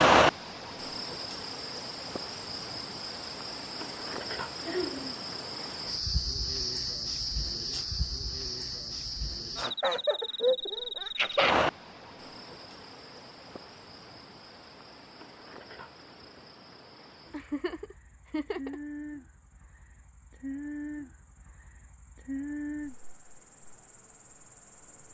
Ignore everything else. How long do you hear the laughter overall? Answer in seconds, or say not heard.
4 s.